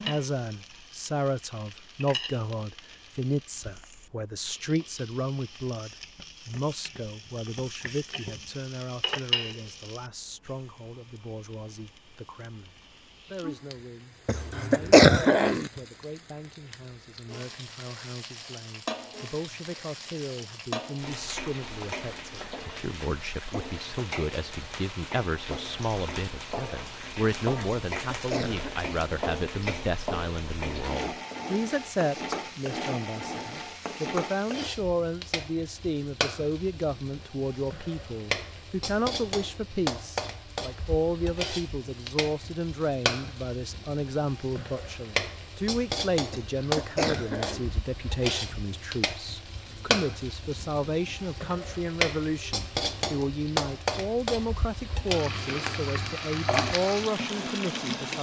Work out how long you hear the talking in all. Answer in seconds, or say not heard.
58 s.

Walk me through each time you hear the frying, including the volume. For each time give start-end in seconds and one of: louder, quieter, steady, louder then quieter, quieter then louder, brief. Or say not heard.
0.0-58.1 louder.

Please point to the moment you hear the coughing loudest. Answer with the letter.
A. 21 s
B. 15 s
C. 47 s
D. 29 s
B.